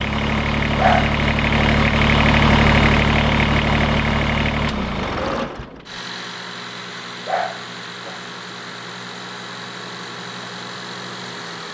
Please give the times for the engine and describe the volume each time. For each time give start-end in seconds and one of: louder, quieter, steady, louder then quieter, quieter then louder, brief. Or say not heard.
0.0-11.6 quieter.